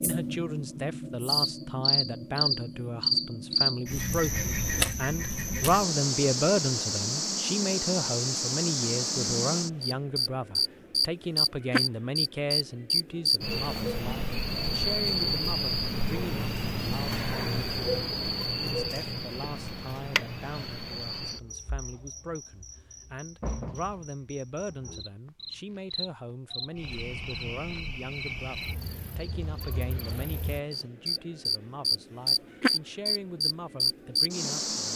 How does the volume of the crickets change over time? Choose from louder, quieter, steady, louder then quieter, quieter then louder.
quieter then louder.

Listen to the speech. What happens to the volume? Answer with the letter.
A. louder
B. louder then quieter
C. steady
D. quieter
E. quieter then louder
D.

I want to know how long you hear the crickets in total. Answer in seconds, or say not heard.
35 s.